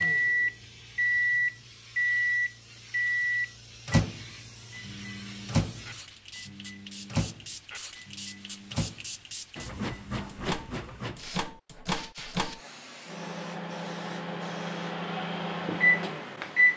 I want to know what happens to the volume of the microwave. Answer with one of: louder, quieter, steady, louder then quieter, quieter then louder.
quieter then louder.